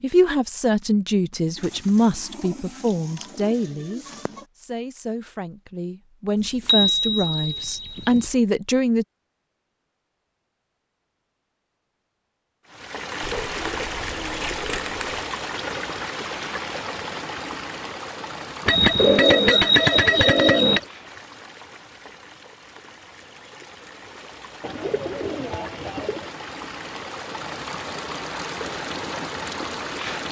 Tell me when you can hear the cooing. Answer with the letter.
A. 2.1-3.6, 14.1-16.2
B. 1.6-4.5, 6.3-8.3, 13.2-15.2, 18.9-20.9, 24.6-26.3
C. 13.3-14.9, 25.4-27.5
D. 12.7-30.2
B.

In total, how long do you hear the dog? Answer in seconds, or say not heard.
not heard.